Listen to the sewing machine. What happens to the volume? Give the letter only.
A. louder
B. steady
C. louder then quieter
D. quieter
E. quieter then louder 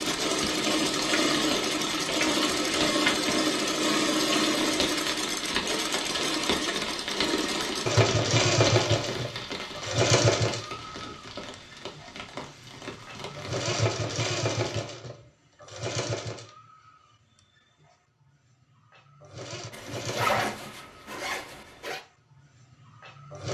D.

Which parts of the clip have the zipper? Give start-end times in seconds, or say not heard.
19.7-22.0.